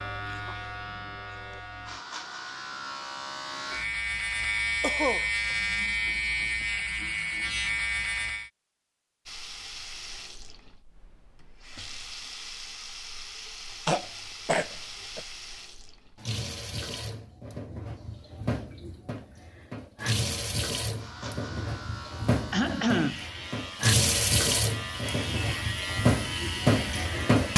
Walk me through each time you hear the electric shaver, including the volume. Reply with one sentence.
The electric shaver can be heard from 0.0 to 8.5 s, getting louder; and from 20.9 to 27.5 s, getting louder.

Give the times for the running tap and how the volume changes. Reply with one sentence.
You can hear the running tap from 9.2 to 27.5 s, getting louder.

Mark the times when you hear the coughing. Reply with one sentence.
You can hear the coughing from 4.8 to 5.2 s, from 13.8 to 15.2 s and from 22.5 to 23.2 s.